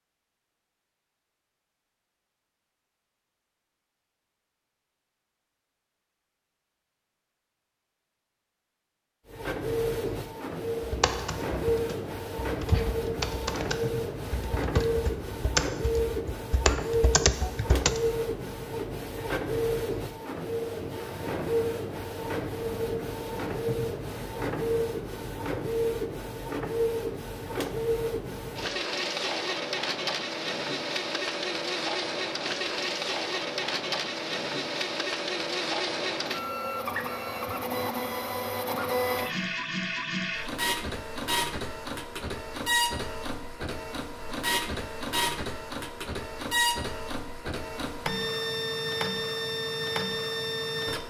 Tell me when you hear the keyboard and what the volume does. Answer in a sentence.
The keyboard can be heard from 10.8 to 18.0 s, getting louder.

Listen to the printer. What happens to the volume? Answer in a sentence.
The volume of the printer stays about the same.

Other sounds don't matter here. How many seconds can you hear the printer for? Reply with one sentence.
The printer can be heard for 42 seconds in total.